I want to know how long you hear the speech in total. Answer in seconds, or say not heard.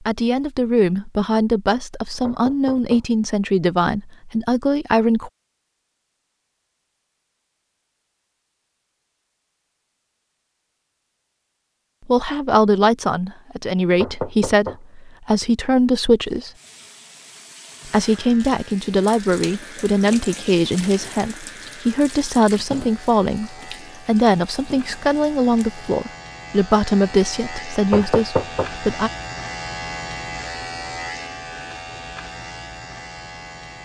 21 s.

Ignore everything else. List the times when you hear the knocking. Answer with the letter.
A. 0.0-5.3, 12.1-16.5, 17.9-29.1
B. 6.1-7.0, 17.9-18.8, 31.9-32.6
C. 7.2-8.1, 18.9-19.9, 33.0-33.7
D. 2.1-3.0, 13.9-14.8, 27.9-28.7
D.